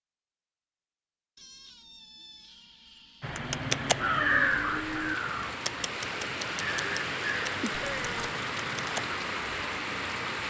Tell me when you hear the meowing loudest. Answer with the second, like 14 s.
8 s.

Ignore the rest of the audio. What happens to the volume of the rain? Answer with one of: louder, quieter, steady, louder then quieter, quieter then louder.
louder.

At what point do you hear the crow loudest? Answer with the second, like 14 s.
4 s.